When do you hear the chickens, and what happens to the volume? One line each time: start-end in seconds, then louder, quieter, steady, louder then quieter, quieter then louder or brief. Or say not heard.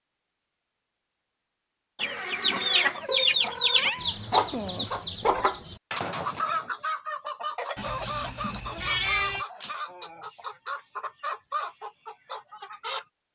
2.0-13.1 quieter.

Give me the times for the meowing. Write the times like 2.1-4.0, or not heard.
3.0-4.9, 7.8-9.4.